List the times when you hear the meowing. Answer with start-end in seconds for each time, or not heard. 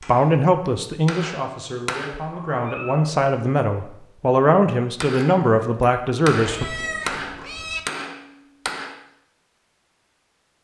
2.3-3.0, 6.3-7.8.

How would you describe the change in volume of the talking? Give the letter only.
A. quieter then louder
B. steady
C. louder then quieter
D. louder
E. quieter
A.